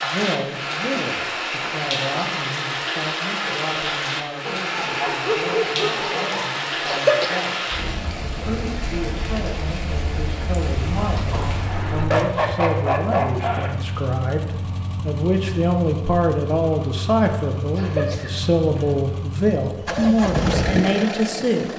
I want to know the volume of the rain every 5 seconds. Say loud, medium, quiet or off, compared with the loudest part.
loud, loud, medium, off, off.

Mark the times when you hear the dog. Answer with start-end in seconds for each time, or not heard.
4.5-6.5, 11.3-13.8.